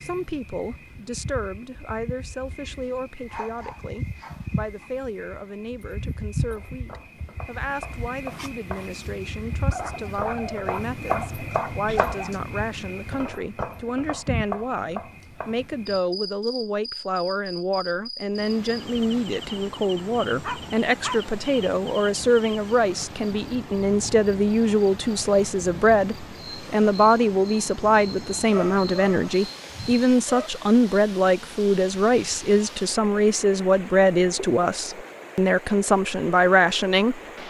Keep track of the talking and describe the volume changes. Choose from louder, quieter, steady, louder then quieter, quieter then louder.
louder.